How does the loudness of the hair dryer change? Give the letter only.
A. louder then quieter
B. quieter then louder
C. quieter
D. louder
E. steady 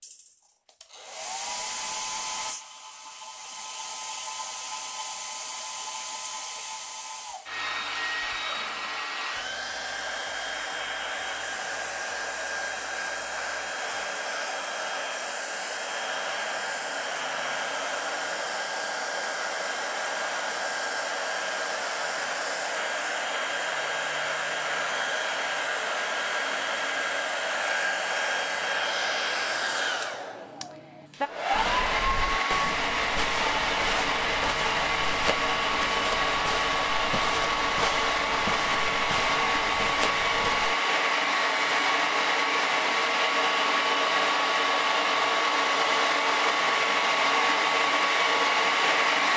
D.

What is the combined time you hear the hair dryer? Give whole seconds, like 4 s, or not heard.
49 s.